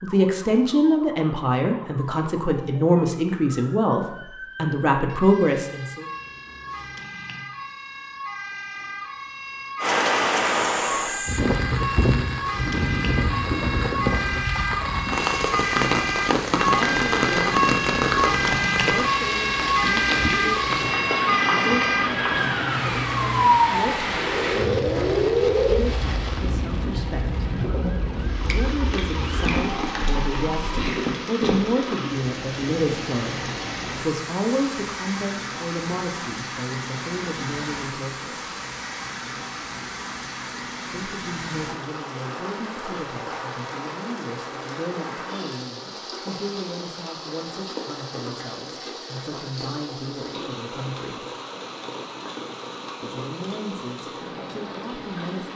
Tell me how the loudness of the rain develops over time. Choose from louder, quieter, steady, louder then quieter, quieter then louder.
quieter.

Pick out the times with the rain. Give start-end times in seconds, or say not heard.
9.8-55.5.